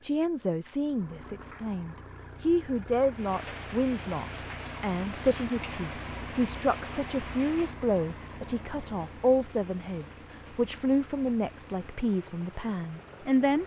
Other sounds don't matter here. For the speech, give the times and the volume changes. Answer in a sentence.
You can hear the speech from 0.0 to 13.6 s, at a steady volume.